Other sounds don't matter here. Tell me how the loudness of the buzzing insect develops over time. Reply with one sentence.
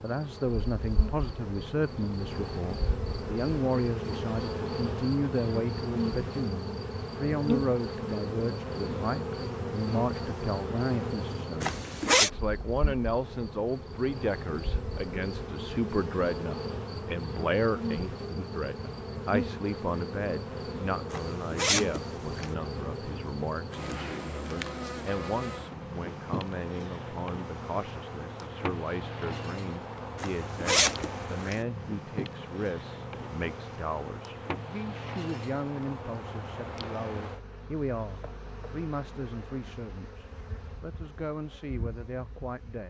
The volume of the buzzing insect goes down.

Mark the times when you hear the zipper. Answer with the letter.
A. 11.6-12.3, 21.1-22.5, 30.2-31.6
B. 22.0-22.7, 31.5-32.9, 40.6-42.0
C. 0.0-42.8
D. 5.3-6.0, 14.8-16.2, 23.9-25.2
A.